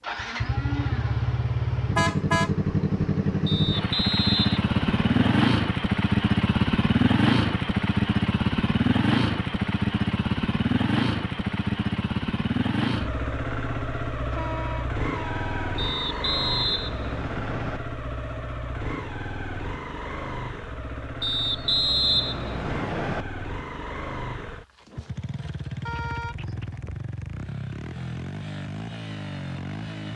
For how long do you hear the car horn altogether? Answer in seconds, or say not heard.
3 s.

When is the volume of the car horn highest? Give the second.
2 s.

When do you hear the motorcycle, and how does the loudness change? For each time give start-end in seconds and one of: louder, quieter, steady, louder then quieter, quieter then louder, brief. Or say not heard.
0.0-30.1 quieter.